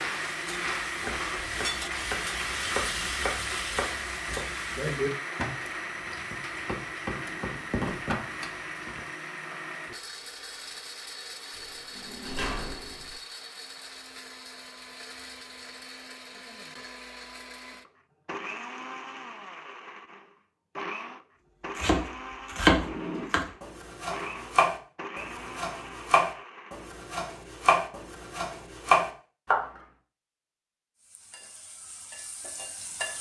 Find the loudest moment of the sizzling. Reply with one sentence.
The volume of the sizzling peaks at 3 seconds.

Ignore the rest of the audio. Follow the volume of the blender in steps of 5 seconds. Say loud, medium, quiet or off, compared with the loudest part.
loud, loud, medium, medium, medium, medium, off.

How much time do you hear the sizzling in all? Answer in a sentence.
You can hear the sizzling for 7 seconds altogether.